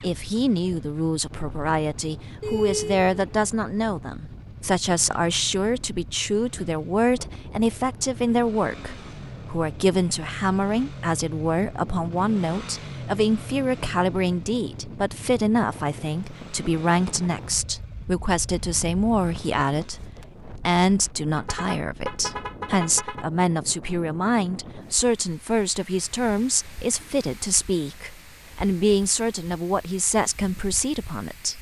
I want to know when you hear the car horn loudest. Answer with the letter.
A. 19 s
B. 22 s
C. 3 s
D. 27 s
C.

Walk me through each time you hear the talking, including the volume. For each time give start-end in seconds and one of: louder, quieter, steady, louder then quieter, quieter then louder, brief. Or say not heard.
0.0-31.5 steady.